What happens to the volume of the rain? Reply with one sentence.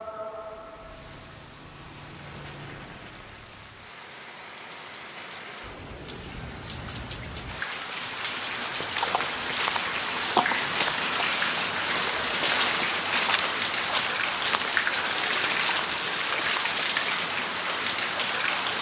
The volume of the rain goes up.